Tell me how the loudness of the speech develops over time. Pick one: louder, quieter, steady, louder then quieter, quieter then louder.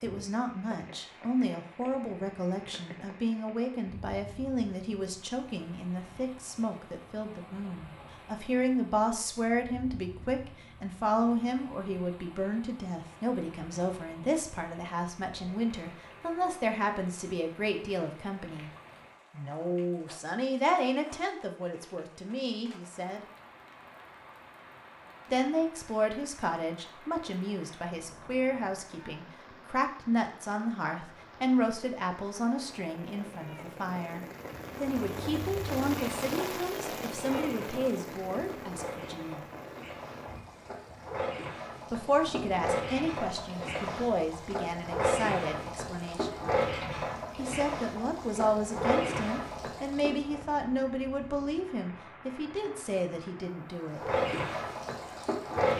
steady.